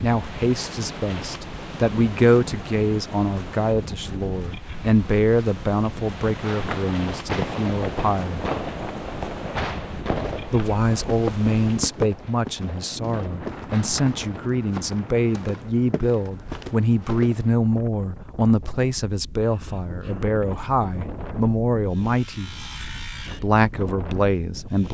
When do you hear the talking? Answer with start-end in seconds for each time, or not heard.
0.0-8.4, 10.5-22.5, 23.4-24.8.